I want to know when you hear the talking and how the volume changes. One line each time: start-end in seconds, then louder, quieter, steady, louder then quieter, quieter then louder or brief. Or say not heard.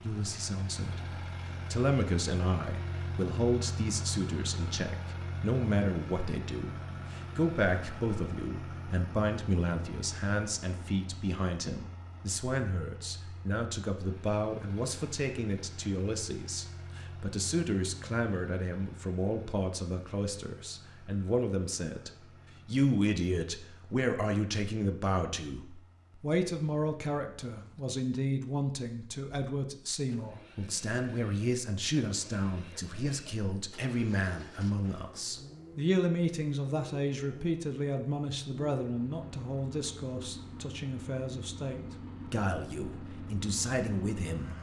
0.0-44.5 steady.